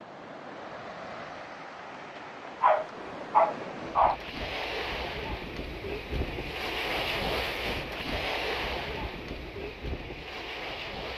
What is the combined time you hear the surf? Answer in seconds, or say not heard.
11 s.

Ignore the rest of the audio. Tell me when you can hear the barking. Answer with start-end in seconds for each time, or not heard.
2.6-4.2.